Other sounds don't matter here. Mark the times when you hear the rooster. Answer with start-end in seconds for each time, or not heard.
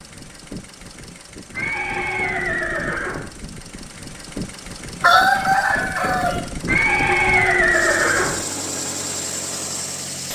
5.0-6.4.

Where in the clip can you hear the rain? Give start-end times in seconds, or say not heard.
not heard.